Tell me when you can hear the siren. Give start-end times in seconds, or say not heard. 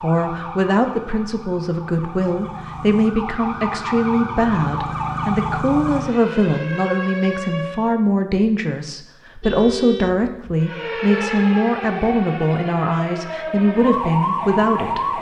0.0-8.0, 10.6-15.1.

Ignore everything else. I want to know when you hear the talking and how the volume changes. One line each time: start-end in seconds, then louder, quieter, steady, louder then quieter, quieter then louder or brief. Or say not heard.
0.0-15.1 steady.